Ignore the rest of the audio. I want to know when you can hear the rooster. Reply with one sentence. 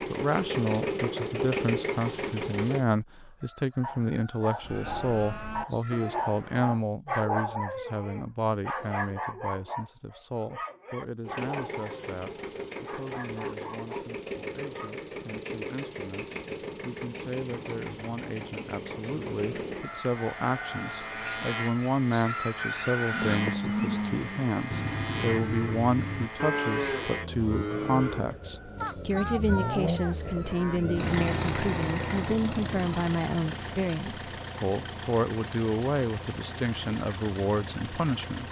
The rooster can be heard from 3.4 to 6.2 s, from 19.8 to 23.4 s and from 28.1 to 31.1 s.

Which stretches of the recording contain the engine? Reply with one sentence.
The engine can be heard from 0.0 to 2.9 s and from 11.2 to 38.4 s.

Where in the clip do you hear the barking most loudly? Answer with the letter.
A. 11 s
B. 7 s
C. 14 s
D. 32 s
B.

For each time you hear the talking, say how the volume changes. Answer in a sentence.
The talking can be heard from 0.1 to 38.4 s, getting quieter then louder.